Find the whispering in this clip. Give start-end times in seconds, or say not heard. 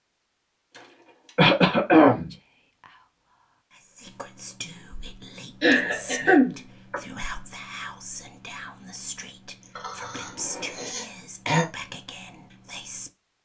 2.1-13.1.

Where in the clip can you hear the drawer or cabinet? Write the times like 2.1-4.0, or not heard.
0.7-1.4, 10.2-10.9.